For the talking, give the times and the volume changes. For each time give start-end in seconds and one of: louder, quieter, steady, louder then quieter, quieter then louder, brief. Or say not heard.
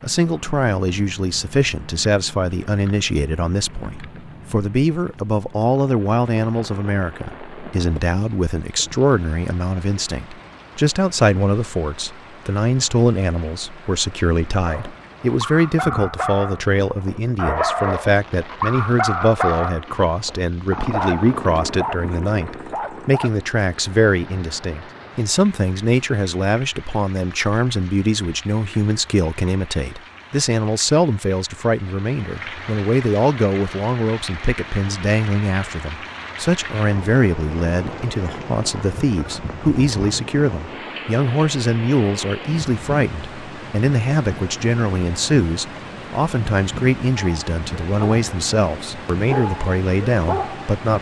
0.0-50.9 steady.